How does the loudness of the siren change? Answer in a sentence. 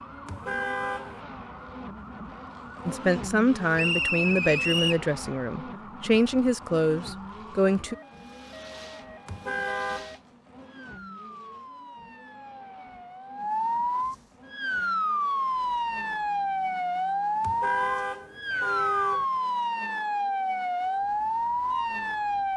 The loudness of the siren goes up.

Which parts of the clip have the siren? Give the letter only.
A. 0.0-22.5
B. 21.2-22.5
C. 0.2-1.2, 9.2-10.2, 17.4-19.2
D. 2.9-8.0
A.